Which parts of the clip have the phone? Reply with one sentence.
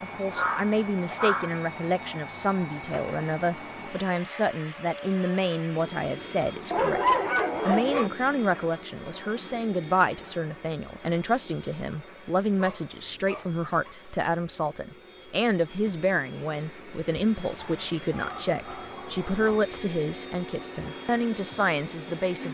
The phone can't be heard in this clip.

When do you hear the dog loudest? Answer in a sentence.
The volume of the dog peaks at 7 seconds.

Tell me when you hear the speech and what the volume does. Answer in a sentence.
The speech can be heard from 0.0 to 22.4 s, at a steady volume.